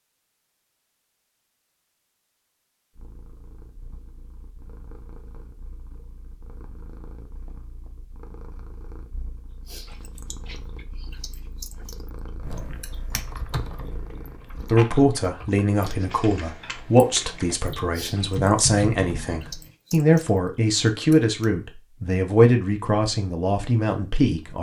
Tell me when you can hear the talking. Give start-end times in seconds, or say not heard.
14.7-24.5.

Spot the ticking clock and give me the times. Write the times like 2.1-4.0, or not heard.
not heard.